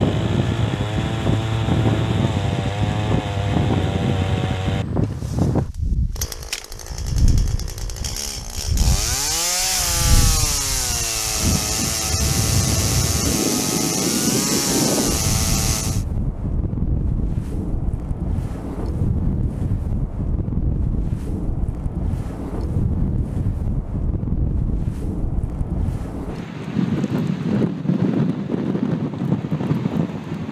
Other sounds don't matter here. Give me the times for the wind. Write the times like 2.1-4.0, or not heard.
0.0-30.4.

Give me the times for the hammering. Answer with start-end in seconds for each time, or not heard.
not heard.